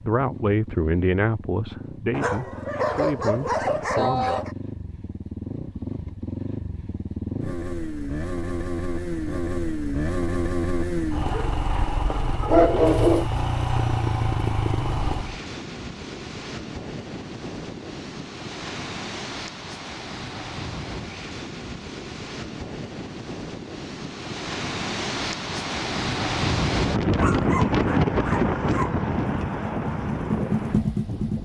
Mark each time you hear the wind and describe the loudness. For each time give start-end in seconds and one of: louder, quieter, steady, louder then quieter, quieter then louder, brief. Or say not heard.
14.8-31.4 louder.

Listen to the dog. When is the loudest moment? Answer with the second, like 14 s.
13 s.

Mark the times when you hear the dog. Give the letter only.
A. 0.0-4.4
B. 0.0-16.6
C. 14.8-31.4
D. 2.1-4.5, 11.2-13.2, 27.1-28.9
D.